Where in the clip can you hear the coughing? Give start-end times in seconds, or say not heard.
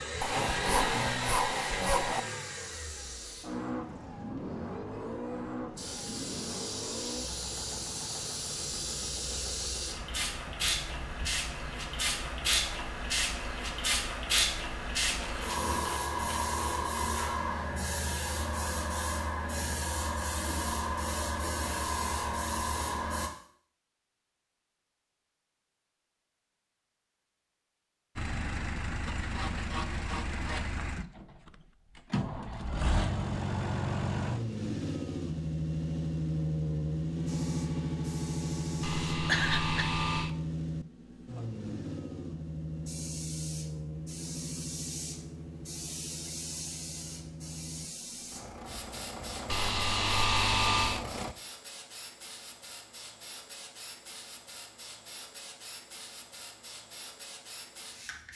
39.2-39.9.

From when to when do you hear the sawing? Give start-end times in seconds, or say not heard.
0.2-2.2, 15.1-16.8, 29.1-31.1, 38.8-40.4, 49.5-51.0.